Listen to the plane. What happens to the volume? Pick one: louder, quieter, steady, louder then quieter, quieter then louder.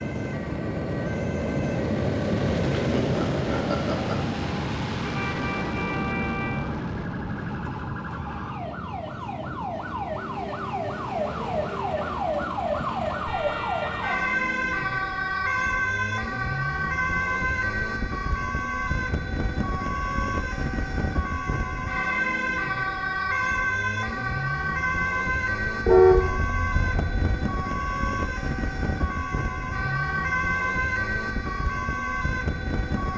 quieter.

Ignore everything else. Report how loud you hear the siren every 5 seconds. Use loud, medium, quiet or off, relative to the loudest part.
quiet, medium, loud, loud, loud, loud, loud.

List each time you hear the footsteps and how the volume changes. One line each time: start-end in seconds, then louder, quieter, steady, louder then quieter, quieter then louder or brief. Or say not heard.
not heard.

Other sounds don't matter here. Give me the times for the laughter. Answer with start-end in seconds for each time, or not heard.
2.8-4.2.